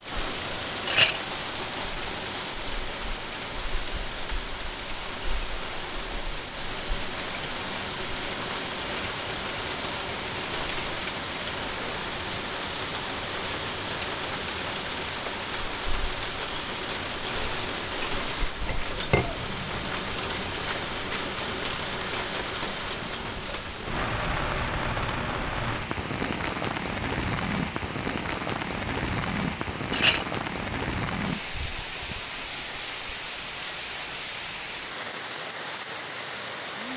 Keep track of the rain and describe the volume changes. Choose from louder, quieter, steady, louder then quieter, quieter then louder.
steady.